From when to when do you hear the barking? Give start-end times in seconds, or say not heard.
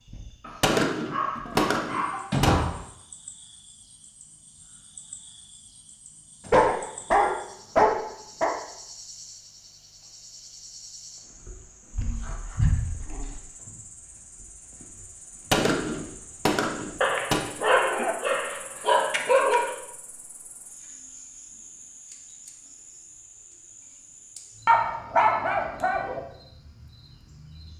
0.5-2.8, 6.5-8.6, 11.9-13.4, 17.0-19.8, 24.6-26.2.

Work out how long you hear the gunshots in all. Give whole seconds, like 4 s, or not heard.
4 s.